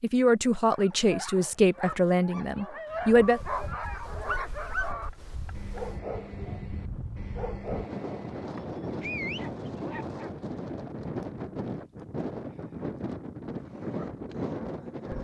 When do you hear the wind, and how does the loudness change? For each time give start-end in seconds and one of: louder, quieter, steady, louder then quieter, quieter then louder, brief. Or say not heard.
2.9-15.1 louder.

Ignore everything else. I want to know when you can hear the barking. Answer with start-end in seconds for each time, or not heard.
0.7-10.3, 13.5-15.1.